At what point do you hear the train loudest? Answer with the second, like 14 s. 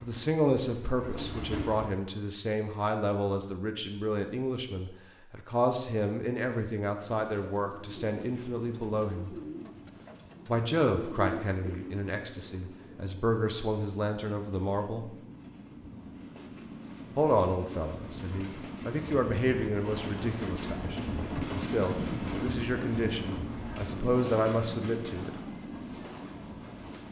22 s.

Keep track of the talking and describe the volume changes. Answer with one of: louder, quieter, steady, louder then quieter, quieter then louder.
steady.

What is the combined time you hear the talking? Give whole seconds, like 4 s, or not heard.
22 s.